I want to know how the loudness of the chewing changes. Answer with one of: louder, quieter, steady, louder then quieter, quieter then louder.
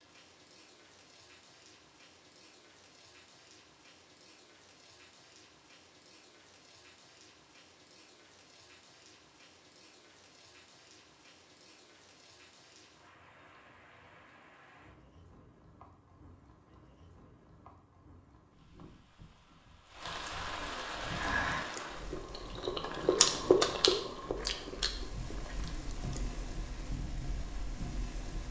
louder then quieter.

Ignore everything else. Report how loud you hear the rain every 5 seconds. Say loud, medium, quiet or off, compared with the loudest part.
quiet, quiet, quiet, quiet, loud, medium.